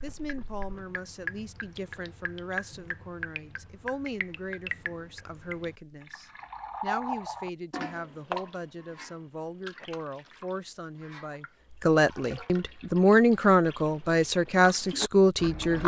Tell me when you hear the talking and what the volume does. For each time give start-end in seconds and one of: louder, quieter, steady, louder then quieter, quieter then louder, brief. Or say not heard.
0.0-15.8 louder.